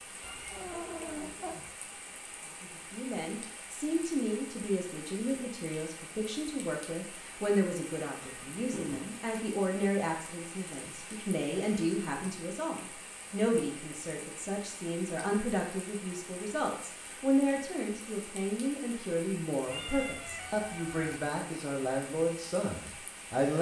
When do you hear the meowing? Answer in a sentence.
You can hear the meowing from 0.2 to 1.7 s, from 8.2 to 9.1 s and from 19.6 to 21.1 s.